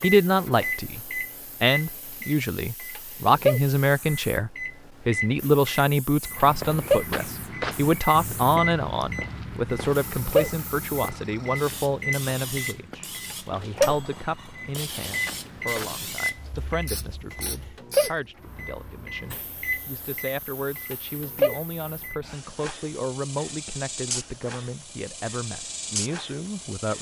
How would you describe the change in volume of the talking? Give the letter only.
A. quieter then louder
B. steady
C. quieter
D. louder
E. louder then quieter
C.